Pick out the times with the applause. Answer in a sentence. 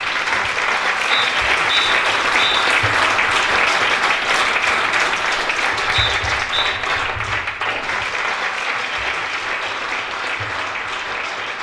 You can hear the applause from 0.0 to 11.5 s.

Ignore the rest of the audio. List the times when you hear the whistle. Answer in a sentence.
The whistle can be heard from 1.1 to 2.7 s and from 5.9 to 6.8 s.